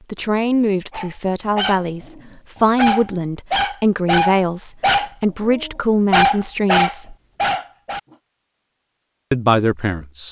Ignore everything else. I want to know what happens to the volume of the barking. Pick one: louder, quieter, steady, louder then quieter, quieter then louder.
louder.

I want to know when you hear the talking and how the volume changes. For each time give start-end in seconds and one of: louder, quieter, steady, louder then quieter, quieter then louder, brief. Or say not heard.
0.1-7.2 steady
9.3-10.2 brief.